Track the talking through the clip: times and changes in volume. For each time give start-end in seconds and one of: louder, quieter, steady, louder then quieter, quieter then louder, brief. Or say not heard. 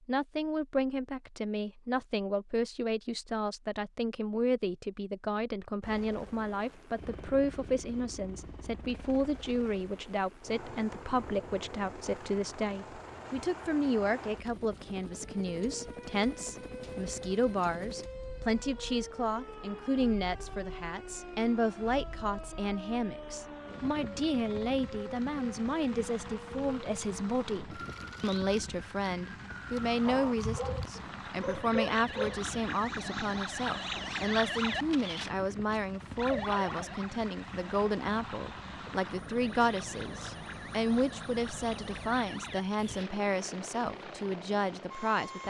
0.1-45.4 steady.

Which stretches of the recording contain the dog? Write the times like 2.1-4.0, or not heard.
30.0-32.4.